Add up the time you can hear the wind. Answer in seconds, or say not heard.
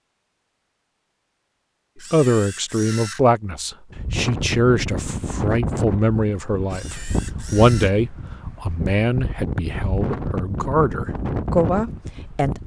9 s.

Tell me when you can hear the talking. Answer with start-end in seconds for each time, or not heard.
2.1-12.6.